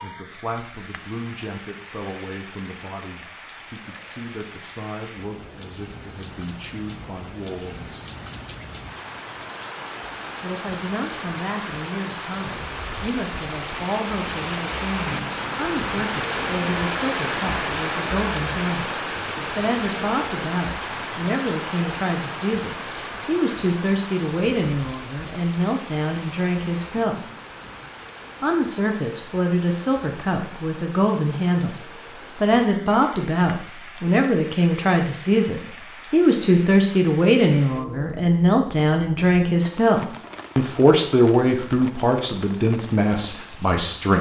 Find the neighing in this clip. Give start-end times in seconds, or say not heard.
not heard.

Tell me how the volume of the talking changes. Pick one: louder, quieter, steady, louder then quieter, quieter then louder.
louder.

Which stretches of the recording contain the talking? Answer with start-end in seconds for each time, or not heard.
0.0-8.1, 10.4-27.2, 28.4-44.1.